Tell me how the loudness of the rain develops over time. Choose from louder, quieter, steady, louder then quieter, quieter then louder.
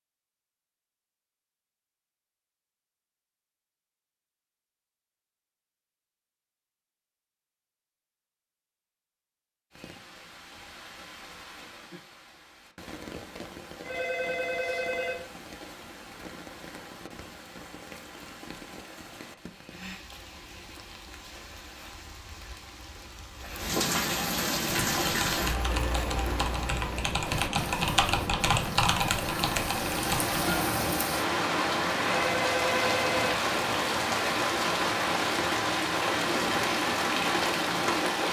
louder.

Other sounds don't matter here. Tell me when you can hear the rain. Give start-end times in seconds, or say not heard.
9.7-38.2.